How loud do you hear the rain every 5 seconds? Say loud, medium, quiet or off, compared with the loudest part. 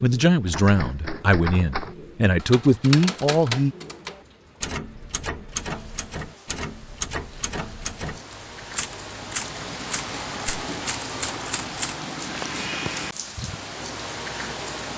quiet, medium, loud.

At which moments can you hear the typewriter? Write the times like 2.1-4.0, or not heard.
0.5-12.0.